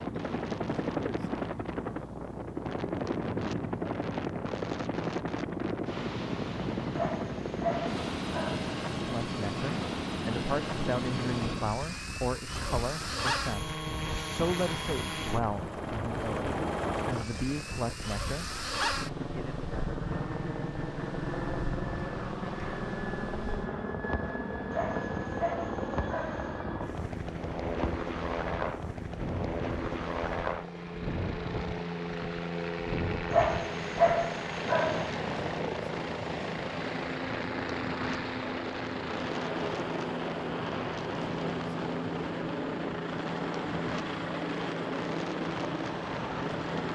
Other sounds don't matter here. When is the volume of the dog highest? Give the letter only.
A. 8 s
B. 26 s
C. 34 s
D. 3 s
C.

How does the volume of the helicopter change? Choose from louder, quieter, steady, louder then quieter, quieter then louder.
steady.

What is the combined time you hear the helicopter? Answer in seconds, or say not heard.
47 s.